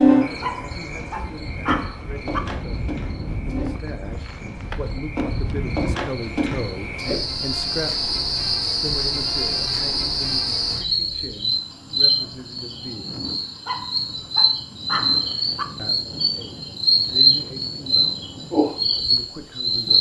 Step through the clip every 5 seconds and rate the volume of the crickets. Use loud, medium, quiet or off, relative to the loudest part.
medium, medium, loud, loud.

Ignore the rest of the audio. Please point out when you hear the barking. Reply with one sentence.
You can hear the barking from 0.4 to 2.4 s and from 13.7 to 15.7 s.